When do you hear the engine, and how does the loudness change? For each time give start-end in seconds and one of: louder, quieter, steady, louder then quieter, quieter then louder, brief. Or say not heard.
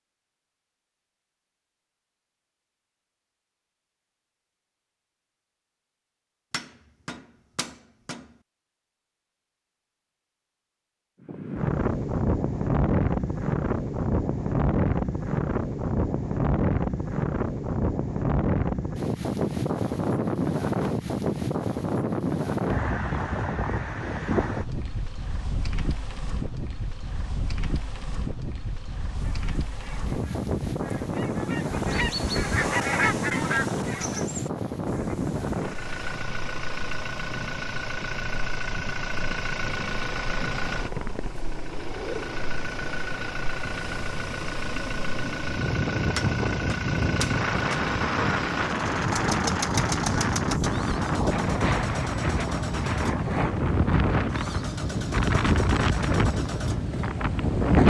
35.5-57.6 steady.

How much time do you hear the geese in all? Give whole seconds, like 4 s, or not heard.
7 s.